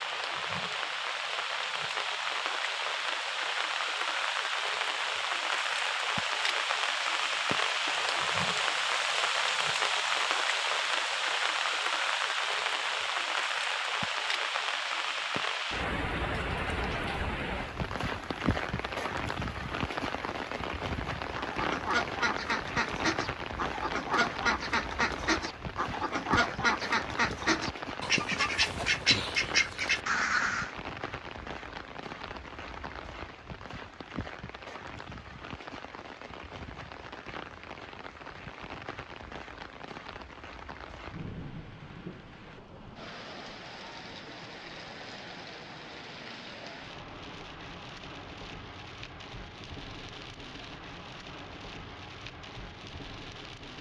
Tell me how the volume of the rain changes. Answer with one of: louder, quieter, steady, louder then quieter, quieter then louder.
quieter.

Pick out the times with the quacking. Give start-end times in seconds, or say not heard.
21.4-30.7.